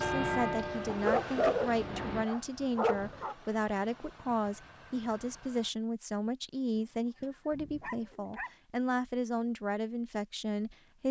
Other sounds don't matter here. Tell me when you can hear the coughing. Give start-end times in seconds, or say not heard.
not heard.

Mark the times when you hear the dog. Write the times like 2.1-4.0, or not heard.
0.8-3.4, 6.8-8.5.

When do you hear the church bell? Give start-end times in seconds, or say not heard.
0.0-2.3.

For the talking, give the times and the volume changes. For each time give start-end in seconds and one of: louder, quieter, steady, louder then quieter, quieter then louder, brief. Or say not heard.
0.0-11.0 steady.